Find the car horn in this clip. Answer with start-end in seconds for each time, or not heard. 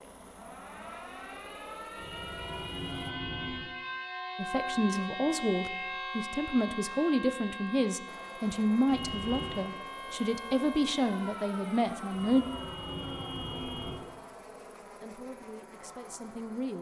1.9-3.6, 8.8-9.7, 12.1-13.9.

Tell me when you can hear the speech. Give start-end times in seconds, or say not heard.
4.3-12.4, 14.8-16.7.